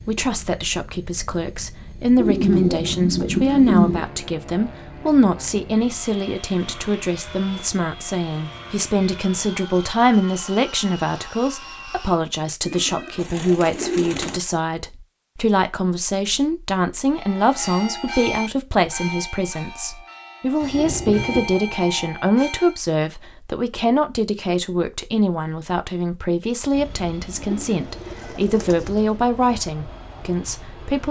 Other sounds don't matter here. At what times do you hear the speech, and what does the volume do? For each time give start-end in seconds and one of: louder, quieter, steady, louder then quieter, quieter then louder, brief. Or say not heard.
0.1-31.0 steady.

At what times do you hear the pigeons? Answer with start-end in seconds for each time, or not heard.
2.1-4.0, 12.7-14.4, 27.4-29.2.